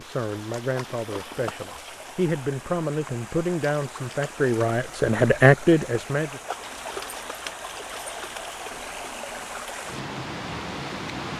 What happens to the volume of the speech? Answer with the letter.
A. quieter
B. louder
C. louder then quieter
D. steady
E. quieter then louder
B.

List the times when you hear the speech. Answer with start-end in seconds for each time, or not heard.
0.0-6.4.